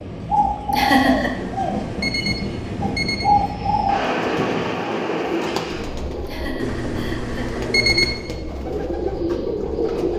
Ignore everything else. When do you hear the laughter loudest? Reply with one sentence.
The loudest moment of the laughter is at 1 second.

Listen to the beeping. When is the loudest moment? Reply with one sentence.
The volume of the beeping peaks at 8 seconds.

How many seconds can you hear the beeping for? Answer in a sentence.
You can hear the beeping for 4 seconds altogether.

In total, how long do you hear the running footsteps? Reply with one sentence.
The running footsteps can't be heard in this clip.